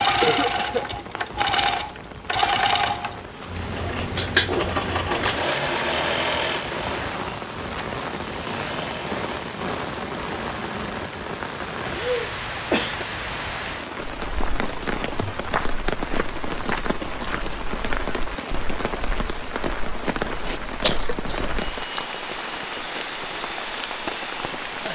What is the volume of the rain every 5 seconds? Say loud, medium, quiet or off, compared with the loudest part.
medium, loud, loud, loud, loud.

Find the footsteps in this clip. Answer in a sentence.
The footsteps can be heard from 14.0 to 21.8 s.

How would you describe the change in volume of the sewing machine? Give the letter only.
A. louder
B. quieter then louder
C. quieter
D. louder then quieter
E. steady
C.